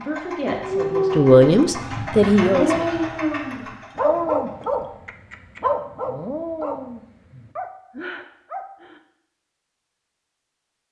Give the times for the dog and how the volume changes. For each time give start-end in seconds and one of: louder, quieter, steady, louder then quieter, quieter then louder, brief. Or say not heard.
0.5-9.0 quieter.